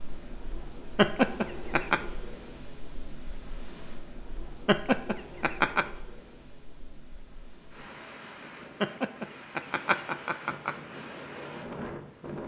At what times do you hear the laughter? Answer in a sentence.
The laughter can be heard from 0.9 to 2.0 s, from 4.7 to 5.8 s and from 8.8 to 10.8 s.